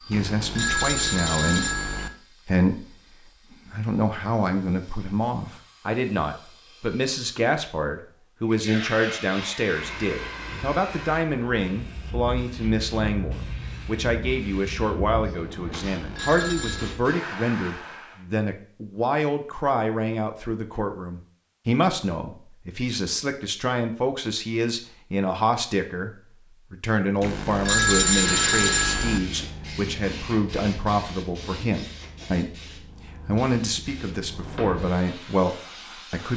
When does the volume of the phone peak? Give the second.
28 s.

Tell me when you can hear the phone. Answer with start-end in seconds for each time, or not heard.
0.1-2.1, 15.7-16.9, 27.2-29.2.